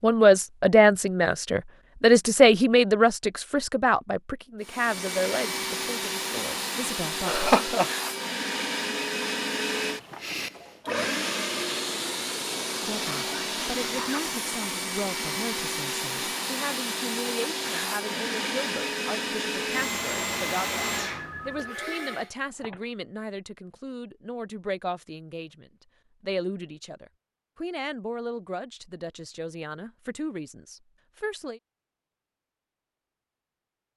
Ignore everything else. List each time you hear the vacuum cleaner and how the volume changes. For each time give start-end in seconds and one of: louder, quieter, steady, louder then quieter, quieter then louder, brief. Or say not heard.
4.6-22.3 steady.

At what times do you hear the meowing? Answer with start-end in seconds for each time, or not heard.
not heard.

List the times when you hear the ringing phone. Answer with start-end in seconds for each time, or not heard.
21.1-22.9.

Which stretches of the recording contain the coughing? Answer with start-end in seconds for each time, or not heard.
7.2-7.9.